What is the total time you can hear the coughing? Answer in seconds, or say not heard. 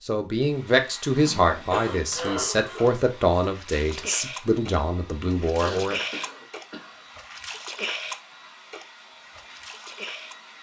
3 s.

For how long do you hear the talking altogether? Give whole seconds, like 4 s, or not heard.
6 s.